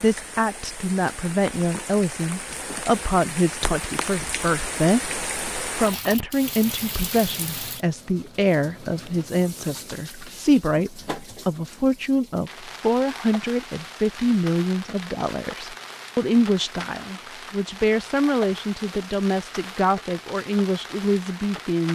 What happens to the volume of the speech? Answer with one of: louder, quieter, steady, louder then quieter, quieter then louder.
steady.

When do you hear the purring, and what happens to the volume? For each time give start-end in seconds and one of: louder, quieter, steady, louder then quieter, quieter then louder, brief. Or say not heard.
not heard.